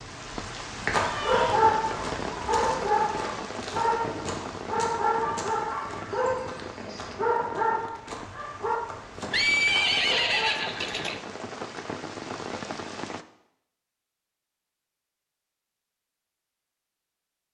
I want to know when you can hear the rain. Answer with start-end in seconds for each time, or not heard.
0.0-13.2.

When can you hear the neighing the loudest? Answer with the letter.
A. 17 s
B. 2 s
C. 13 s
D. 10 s
D.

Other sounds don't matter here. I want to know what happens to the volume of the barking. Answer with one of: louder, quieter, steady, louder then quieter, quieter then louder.
quieter.